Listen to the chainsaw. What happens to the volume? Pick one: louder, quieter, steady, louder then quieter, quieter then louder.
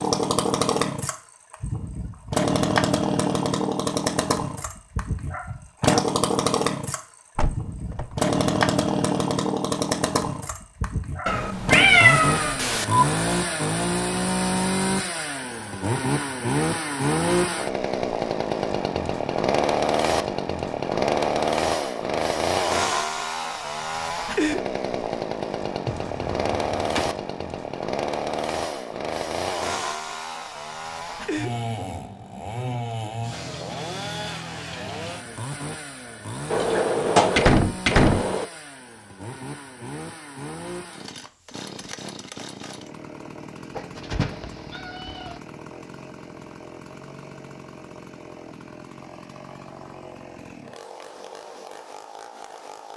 quieter.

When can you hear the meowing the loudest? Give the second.
12 s.